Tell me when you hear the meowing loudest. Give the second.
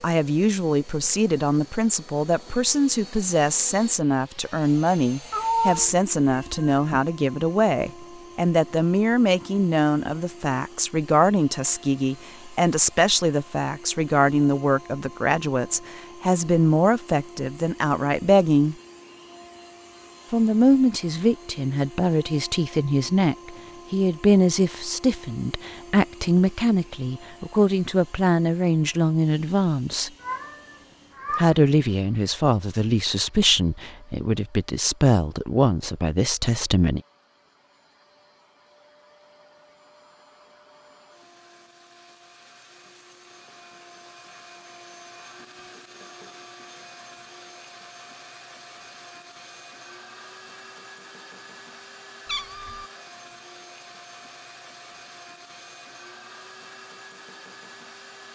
6 s.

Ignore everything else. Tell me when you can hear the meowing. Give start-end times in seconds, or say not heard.
5.3-6.8, 30.2-31.5, 52.2-52.9.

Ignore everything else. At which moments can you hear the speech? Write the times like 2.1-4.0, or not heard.
0.0-18.8, 20.3-30.1, 31.4-37.0.